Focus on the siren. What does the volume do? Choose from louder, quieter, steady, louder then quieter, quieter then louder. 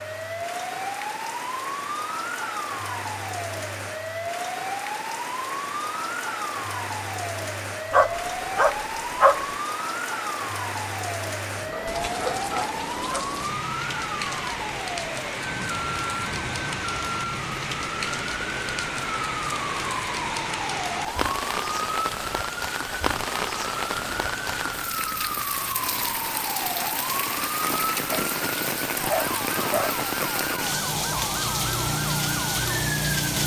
steady.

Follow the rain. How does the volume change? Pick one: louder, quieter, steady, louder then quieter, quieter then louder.
louder.